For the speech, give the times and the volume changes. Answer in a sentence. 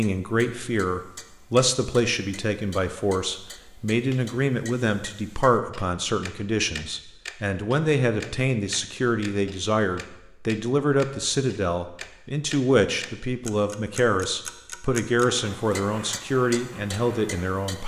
You can hear the speech from 0.0 to 17.8 s, at a steady volume.